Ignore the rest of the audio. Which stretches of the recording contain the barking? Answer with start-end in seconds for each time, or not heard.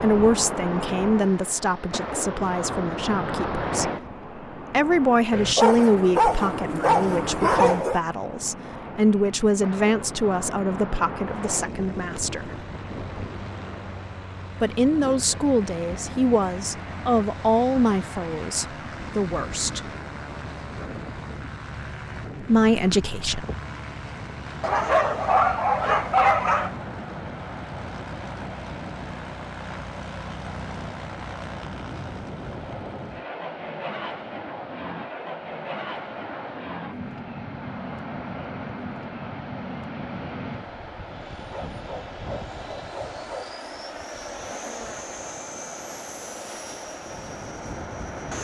5.3-8.0, 24.6-26.7, 41.5-43.5.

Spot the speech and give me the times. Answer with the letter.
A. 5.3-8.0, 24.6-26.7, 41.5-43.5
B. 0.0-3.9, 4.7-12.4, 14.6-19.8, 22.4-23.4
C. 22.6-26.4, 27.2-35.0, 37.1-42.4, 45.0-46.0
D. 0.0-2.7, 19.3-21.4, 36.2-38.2
B.